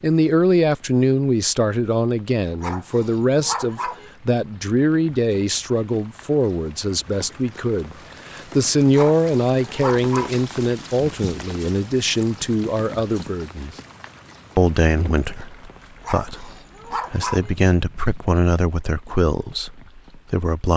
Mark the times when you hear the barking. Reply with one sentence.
You can hear the barking from 2.6 to 4.1 s, from 8.9 to 10.4 s and from 16.0 to 17.6 s.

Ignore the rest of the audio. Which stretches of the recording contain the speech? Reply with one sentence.
The speech can be heard from 0.0 to 13.8 s, from 14.6 to 16.5 s and from 17.1 to 20.7 s.